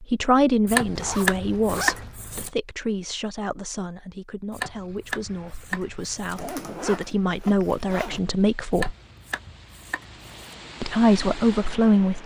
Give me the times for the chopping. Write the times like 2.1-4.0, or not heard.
0.7-2.5, 4.5-6.5, 8.7-10.6.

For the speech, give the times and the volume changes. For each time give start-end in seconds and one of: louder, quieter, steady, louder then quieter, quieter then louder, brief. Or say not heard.
0.0-8.9 quieter then louder
10.8-12.2 brief.